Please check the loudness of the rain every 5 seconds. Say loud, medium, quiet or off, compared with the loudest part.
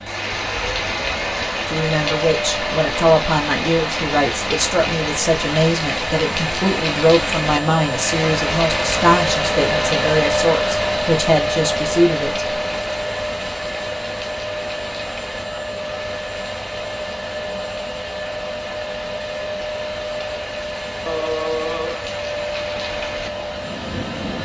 loud, loud, medium, quiet, medium.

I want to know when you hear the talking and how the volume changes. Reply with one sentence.
You can hear the talking from 1.7 to 12.4 s, at a steady volume.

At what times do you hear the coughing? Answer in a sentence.
You can hear the coughing from 21.1 to 22.1 s.